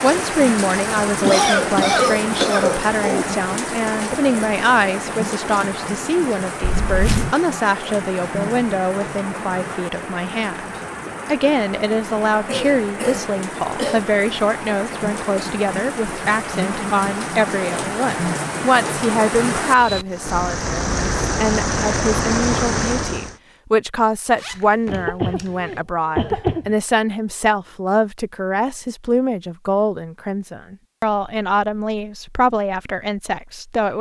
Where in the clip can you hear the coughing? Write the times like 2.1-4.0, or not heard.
1.2-3.2, 12.4-14.1, 24.9-26.7.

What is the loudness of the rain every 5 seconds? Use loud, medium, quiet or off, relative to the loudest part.
loud, medium, medium, loud, loud, off, off.